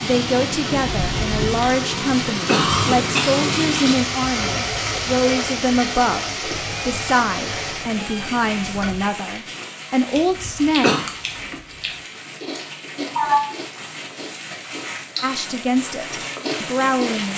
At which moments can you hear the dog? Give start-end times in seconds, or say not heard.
not heard.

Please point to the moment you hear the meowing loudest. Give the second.
13 s.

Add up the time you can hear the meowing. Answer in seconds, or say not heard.
4 s.